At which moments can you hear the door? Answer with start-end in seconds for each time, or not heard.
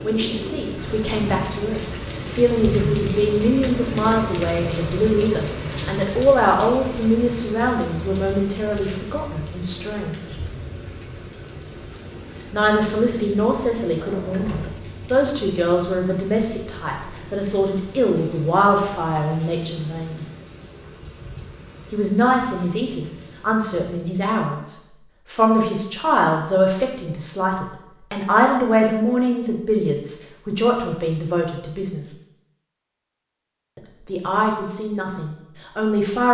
13.9-14.9.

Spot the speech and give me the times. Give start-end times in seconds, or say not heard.
0.0-10.3, 12.5-20.2, 21.9-32.1, 33.8-36.3.